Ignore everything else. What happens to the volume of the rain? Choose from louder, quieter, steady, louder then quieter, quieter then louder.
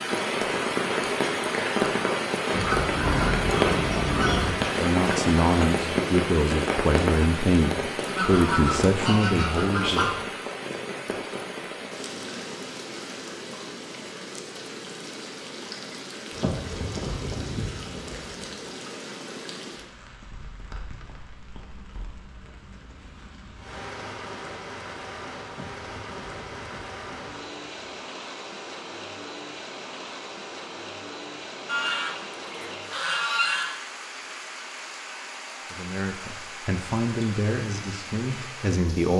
quieter.